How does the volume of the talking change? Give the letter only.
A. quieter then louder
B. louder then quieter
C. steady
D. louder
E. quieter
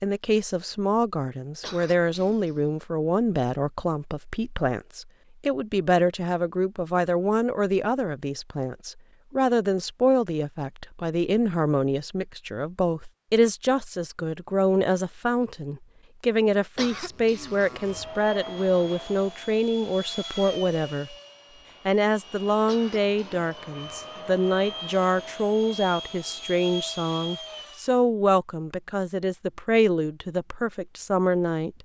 C.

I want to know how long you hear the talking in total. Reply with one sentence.
You can hear the talking for 31 seconds altogether.